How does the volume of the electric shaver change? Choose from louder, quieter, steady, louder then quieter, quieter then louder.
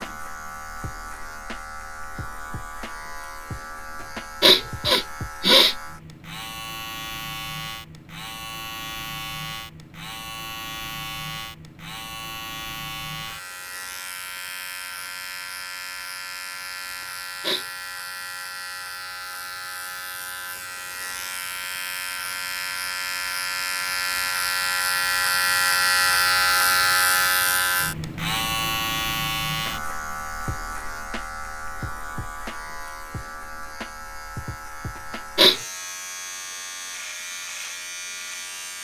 louder then quieter.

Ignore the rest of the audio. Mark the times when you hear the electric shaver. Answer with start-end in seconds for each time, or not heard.
0.0-38.7.